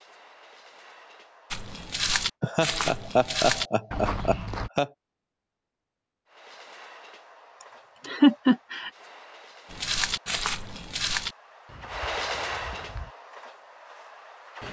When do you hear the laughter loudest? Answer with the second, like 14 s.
8 s.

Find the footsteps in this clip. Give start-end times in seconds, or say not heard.
1.5-4.7, 9.7-13.1.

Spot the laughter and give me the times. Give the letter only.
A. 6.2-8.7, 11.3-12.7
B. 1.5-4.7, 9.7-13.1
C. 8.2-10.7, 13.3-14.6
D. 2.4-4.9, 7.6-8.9
D.